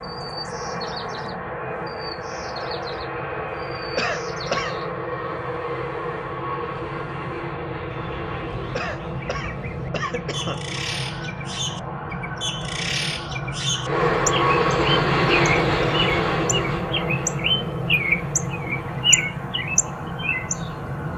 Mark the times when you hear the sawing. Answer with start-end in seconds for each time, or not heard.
not heard.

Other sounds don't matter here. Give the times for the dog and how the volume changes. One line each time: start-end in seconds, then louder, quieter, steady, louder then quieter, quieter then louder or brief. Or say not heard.
not heard.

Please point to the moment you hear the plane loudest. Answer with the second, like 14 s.
15 s.